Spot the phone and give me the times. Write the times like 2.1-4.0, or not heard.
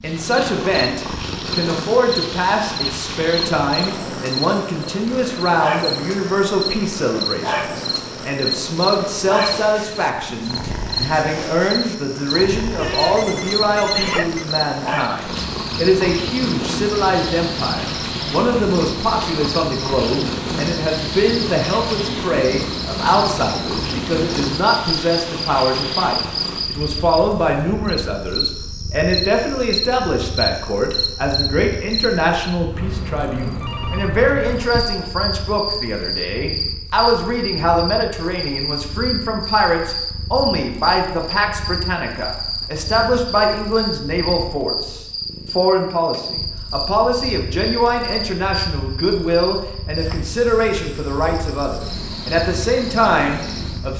12.8-14.4, 33.6-35.1.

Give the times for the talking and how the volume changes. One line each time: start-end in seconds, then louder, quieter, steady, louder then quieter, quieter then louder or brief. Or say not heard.
0.0-53.9 steady.